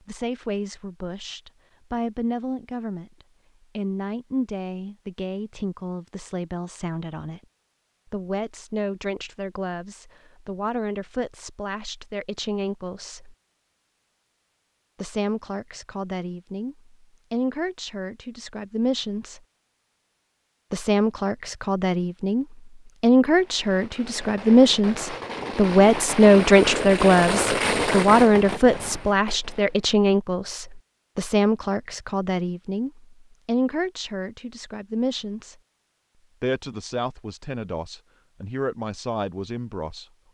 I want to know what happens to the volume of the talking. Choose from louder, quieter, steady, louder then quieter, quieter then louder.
louder then quieter.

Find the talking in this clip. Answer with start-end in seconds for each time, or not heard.
0.1-3.1, 3.8-7.4, 8.1-13.3, 15.0-19.4, 20.7-35.5, 36.4-40.0.